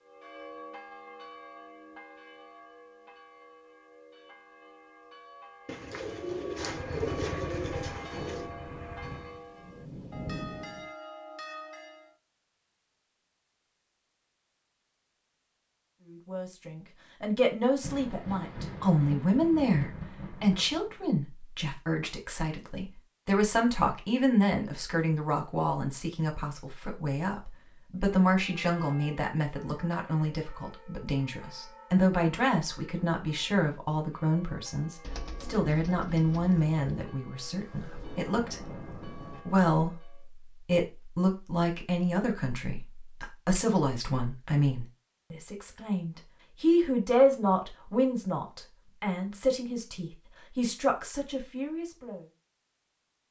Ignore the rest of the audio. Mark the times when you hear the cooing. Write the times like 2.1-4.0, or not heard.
5.7-8.5, 35.0-37.0.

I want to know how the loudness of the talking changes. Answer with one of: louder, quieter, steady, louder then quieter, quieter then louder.
steady.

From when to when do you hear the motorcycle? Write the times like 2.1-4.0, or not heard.
6.6-9.4.